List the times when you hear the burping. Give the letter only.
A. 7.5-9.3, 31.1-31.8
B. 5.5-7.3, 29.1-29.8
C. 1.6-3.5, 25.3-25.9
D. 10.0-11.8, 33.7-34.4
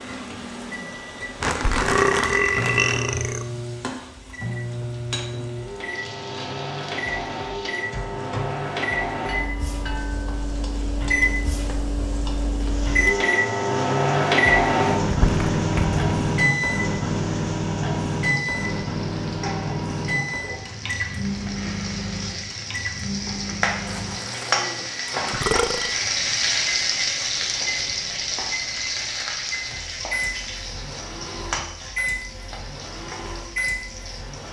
C.